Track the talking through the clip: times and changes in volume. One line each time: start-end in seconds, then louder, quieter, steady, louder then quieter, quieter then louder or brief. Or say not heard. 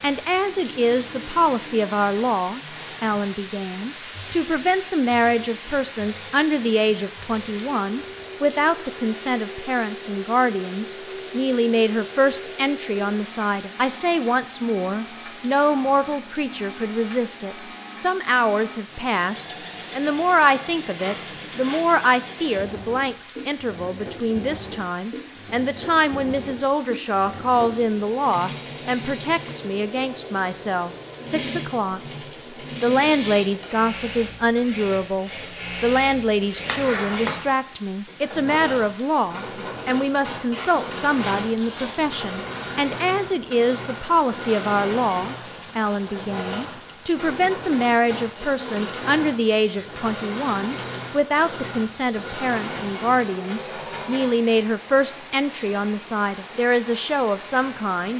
0.0-32.0 steady
32.8-58.1 steady.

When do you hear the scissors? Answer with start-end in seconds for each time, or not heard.
36.6-37.4.